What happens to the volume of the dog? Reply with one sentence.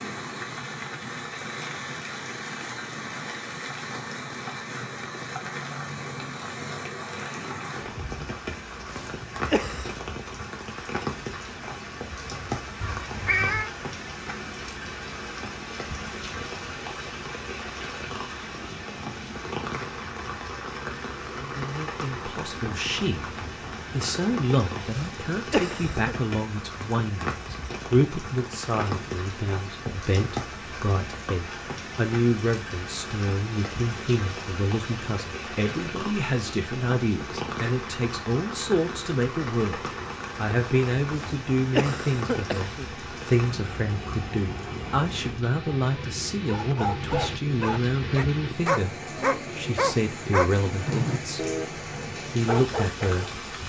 The volume of the dog goes up, then down.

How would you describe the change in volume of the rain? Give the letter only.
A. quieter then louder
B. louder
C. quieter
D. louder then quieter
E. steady
E.